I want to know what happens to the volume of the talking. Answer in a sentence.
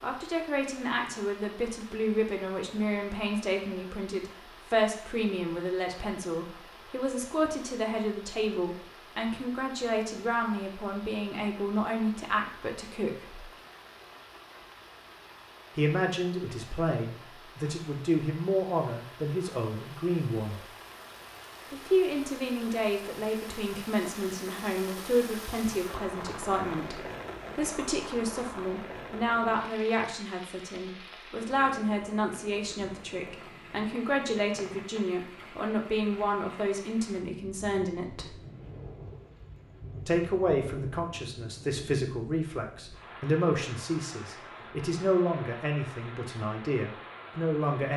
The loudness of the talking stays about the same.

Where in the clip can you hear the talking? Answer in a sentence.
The talking can be heard from 0.0 to 13.4 s, from 15.8 to 20.6 s, from 21.7 to 38.4 s and from 40.0 to 47.9 s.